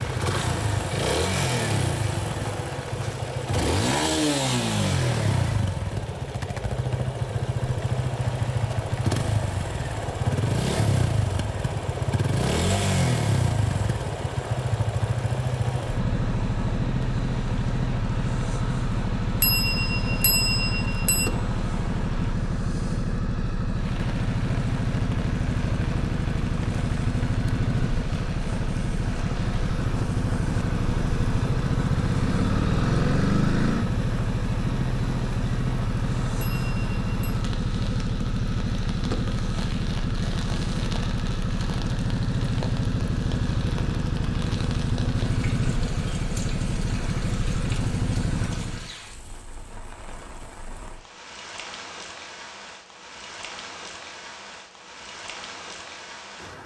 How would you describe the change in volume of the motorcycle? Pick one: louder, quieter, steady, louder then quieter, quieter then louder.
steady.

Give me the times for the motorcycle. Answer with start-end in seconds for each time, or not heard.
0.0-49.0.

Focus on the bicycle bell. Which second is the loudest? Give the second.
20 s.